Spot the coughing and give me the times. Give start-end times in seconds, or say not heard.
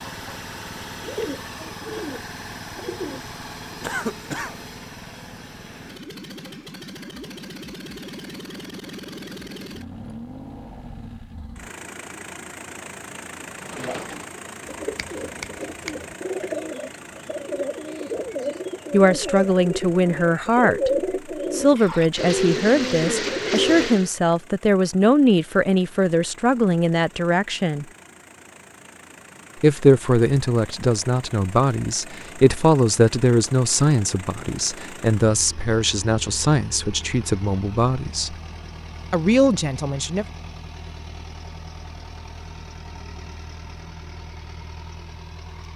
3.8-4.7.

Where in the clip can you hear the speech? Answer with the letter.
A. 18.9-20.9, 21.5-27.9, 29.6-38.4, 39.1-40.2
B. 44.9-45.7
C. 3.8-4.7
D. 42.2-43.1
A.